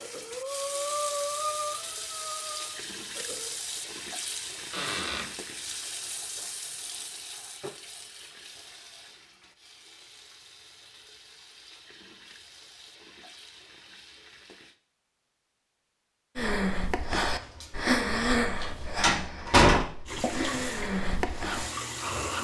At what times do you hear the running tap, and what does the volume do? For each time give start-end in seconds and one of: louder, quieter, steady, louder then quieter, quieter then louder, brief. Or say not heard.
0.0-14.8 quieter
20.1-22.4 brief.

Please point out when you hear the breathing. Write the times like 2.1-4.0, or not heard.
0.0-3.5, 16.4-22.4.